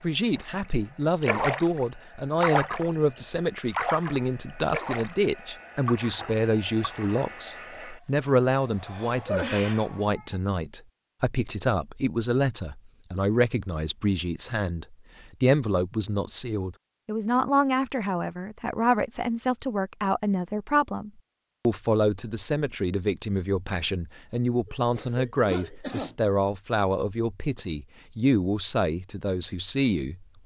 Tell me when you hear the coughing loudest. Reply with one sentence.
The loudest moment of the coughing is at 9 seconds.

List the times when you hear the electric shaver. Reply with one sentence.
The electric shaver can't be heard in this clip.